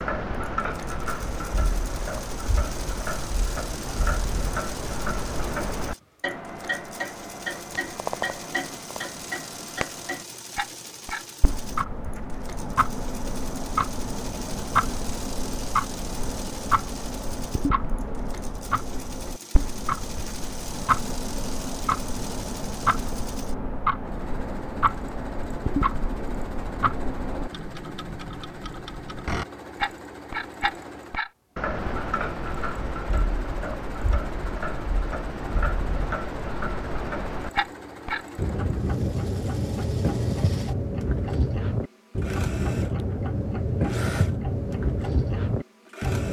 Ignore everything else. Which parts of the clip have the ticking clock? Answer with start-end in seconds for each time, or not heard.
0.0-46.2.